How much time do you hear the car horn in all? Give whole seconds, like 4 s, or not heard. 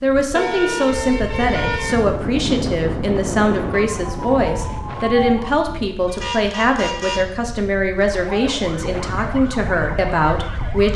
3 s.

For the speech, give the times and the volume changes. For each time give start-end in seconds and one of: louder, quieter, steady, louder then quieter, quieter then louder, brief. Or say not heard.
0.0-10.9 steady.